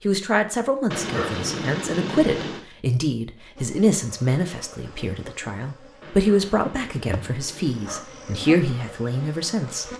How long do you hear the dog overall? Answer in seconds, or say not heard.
4 s.